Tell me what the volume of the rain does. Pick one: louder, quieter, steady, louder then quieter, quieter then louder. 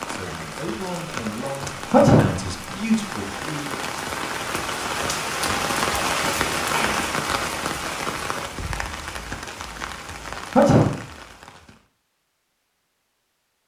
louder then quieter.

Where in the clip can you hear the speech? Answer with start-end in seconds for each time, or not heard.
0.1-3.8.